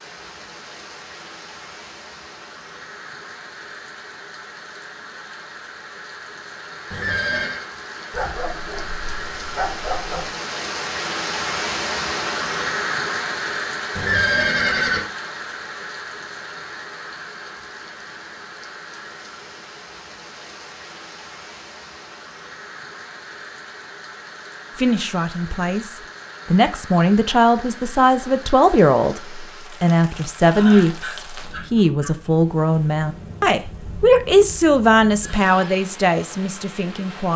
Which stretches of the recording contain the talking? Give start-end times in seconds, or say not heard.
24.8-37.3.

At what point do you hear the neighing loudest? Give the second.
14 s.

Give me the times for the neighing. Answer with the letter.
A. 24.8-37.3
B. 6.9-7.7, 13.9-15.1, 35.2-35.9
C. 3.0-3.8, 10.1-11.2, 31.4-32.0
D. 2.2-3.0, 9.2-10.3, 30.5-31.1
B.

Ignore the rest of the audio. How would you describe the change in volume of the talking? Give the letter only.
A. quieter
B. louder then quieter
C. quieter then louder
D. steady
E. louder
D.